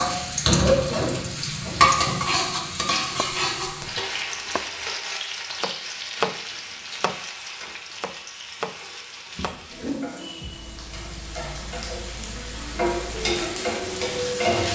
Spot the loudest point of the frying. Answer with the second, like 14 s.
2 s.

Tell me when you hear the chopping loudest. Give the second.
6 s.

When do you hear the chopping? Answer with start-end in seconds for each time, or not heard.
2.7-4.8, 5.5-7.2, 7.9-9.6.